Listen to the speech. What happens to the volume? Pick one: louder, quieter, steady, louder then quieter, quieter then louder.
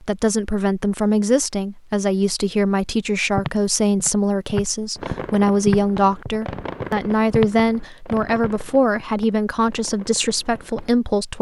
steady.